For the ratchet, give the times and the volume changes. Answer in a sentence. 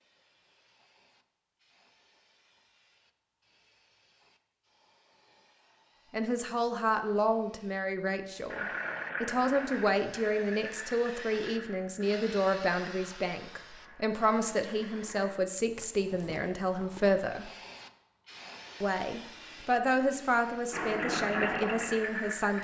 You can't hear the ratchet here.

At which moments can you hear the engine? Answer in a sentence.
You can hear the engine from 8.5 to 15.3 s and from 18.2 to 22.5 s.